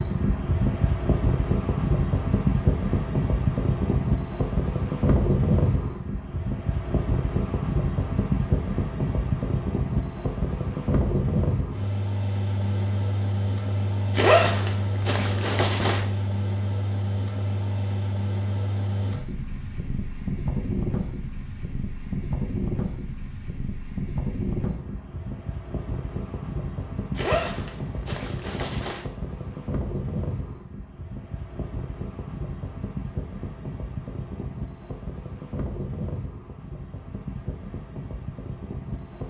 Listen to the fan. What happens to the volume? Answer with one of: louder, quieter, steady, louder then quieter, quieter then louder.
quieter.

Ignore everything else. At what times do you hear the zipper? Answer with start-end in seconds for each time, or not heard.
14.2-16.1, 27.1-29.1.